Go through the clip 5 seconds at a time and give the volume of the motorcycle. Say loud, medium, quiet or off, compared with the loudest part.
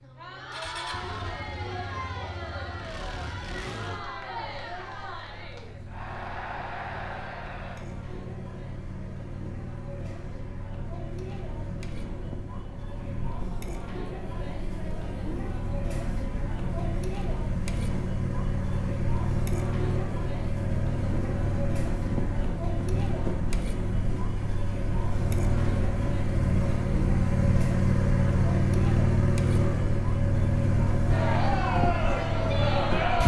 quiet, quiet, quiet, medium, medium, loud, loud.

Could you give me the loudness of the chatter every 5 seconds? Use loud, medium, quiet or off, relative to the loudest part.
medium, medium, medium, medium, medium, medium, loud.